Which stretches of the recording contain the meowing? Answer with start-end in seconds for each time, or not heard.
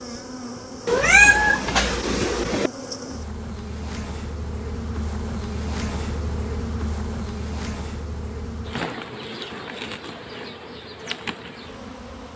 0.8-2.7.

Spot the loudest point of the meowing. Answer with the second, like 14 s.
1 s.